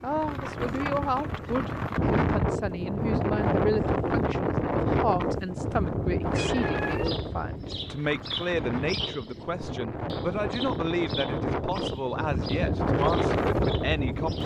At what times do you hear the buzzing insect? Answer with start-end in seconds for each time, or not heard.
not heard.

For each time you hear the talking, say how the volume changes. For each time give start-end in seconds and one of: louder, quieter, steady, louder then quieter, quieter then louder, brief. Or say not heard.
0.0-14.4 steady.